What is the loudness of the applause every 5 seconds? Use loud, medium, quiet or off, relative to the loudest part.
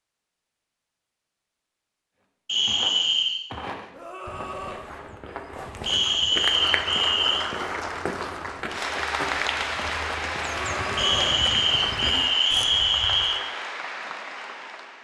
off, loud, loud.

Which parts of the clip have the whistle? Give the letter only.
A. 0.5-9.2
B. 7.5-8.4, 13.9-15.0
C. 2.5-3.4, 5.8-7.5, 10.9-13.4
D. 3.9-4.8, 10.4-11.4
C.